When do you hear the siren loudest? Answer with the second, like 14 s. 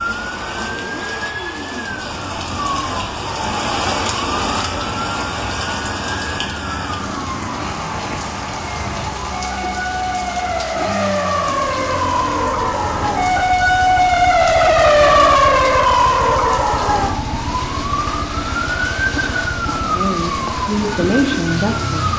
15 s.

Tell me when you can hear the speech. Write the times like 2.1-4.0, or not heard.
19.6-22.1.